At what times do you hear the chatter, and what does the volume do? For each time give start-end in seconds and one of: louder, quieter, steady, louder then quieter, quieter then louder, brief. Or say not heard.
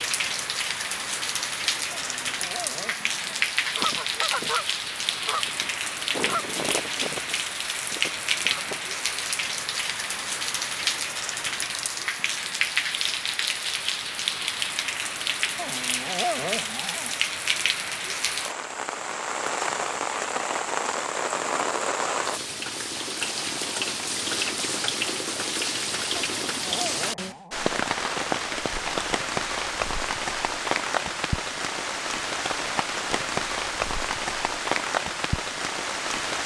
not heard.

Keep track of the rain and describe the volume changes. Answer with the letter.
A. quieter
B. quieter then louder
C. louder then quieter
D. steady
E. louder
D.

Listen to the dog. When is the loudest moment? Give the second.
16 s.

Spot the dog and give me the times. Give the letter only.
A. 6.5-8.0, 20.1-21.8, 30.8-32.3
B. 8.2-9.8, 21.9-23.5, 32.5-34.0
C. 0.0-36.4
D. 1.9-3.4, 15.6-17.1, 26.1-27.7
D.